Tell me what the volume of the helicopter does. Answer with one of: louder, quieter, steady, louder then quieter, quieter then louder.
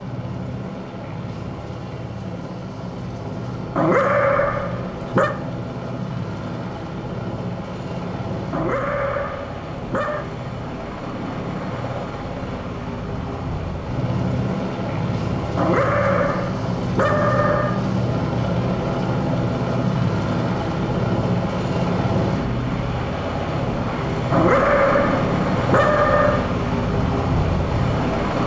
louder.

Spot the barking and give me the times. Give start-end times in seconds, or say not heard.
3.8-5.3, 8.5-10.2, 15.6-17.9, 24.3-26.4.